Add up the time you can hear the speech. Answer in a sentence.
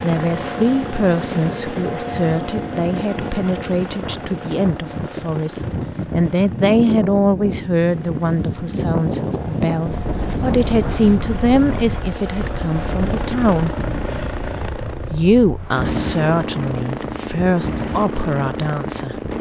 The speech can be heard for 18 seconds in total.